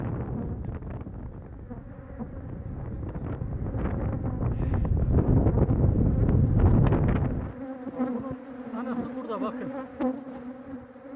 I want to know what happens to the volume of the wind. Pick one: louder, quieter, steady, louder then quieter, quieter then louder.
louder.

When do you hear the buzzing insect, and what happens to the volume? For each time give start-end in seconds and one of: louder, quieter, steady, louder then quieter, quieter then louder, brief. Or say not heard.
0.1-11.1 louder.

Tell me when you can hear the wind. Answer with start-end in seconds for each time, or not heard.
0.0-7.5.